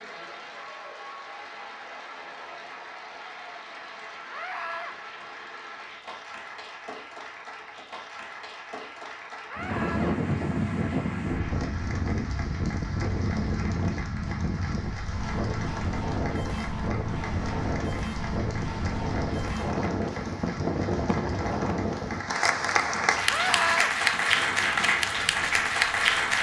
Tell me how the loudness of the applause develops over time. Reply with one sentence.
The volume of the applause goes up.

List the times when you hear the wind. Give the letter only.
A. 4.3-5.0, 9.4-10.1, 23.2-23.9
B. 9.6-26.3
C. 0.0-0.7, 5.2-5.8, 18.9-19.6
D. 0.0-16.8
B.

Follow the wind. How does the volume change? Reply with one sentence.
The volume of the wind goes down.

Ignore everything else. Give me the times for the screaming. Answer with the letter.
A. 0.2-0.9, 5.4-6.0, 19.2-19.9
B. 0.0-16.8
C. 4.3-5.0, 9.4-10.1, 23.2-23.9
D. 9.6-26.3
C.